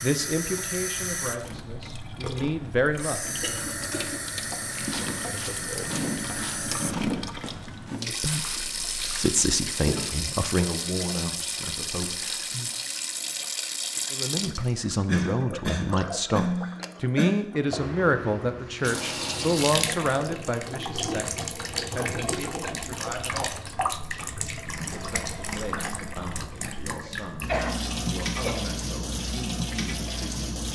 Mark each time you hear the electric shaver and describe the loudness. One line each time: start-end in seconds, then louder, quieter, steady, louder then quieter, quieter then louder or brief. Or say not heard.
not heard.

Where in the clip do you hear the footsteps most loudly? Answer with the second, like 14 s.
7 s.